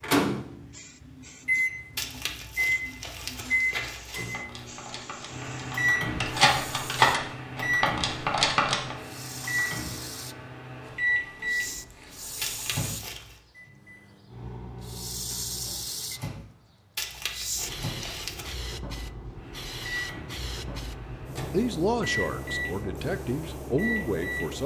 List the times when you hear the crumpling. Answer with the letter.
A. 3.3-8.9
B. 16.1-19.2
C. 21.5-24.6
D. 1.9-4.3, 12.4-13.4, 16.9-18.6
D.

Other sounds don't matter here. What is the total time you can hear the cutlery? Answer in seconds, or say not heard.
6 s.